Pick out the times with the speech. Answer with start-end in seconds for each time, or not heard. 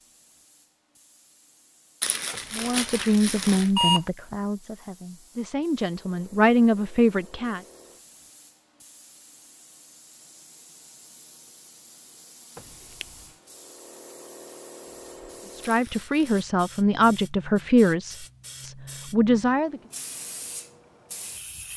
2.5-7.6, 15.6-19.8.